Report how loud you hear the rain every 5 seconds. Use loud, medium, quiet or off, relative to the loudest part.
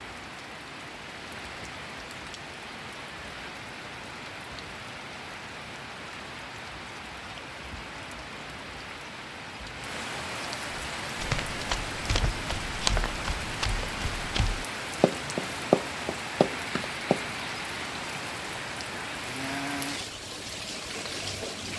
medium, medium, loud, loud, loud.